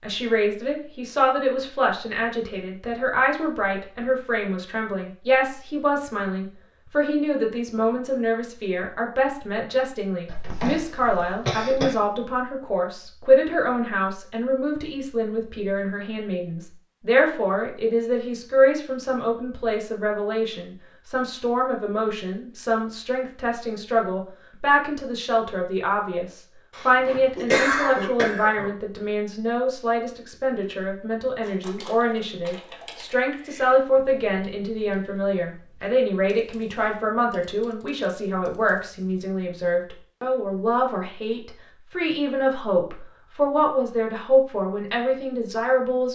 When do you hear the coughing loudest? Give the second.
28 s.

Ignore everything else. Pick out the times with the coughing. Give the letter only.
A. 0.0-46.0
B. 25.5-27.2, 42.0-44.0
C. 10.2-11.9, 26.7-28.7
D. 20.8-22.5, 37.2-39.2
C.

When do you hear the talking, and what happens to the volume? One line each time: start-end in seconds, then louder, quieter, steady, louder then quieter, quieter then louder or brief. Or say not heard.
0.0-46.0 steady.